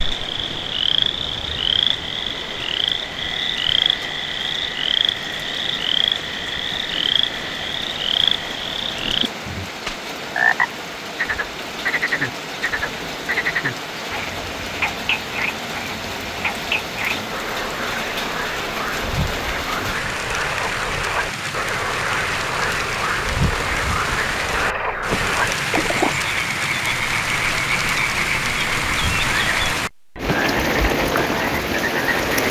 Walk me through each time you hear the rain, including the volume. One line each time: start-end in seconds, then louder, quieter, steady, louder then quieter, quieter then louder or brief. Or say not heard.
0.0-32.4 louder.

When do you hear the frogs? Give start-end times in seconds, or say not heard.
0.0-32.4.